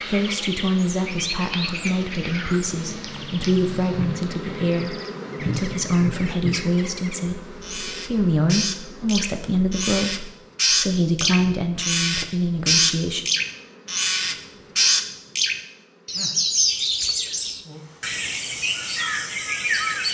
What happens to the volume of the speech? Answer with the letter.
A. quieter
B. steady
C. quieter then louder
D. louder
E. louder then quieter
B.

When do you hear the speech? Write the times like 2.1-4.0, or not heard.
0.1-13.2.